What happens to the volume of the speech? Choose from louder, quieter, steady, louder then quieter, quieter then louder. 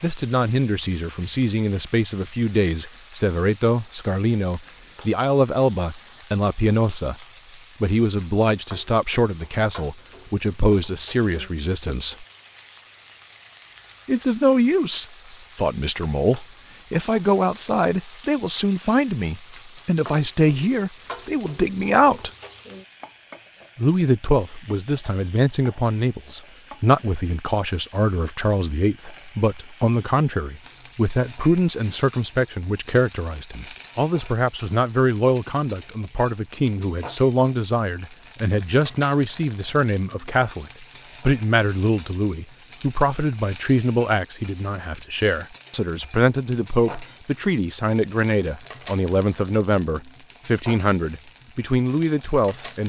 steady.